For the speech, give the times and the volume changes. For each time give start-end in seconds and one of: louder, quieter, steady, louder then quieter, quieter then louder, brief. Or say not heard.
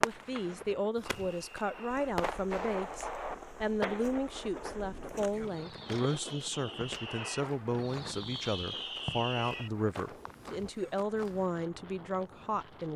0.0-12.9 steady.